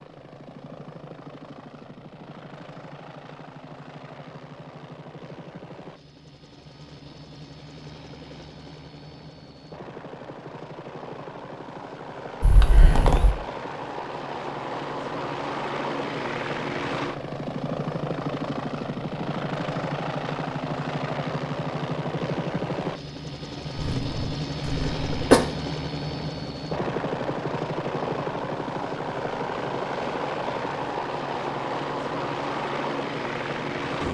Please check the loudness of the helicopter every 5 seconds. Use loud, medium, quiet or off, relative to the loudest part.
quiet, quiet, medium, loud, loud, loud, loud.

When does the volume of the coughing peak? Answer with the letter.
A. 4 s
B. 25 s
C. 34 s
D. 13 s
B.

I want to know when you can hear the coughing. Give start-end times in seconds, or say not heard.
12.4-13.3, 23.8-25.4.